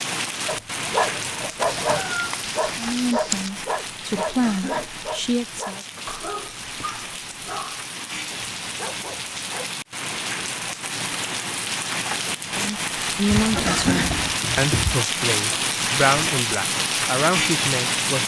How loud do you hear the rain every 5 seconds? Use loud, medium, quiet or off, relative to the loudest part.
medium, medium, loud, loud.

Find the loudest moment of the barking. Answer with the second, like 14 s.
2 s.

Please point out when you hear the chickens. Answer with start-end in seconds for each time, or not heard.
1.8-3.5, 13.2-15.0.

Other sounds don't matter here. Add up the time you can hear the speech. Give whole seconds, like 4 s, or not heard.
9 s.